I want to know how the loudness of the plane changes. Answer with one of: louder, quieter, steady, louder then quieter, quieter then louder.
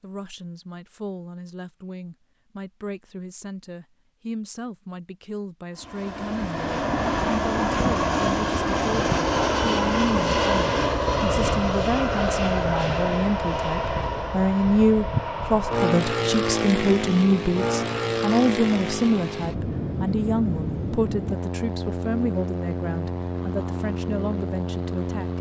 quieter.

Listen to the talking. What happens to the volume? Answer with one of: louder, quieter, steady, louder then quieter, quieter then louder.
louder then quieter.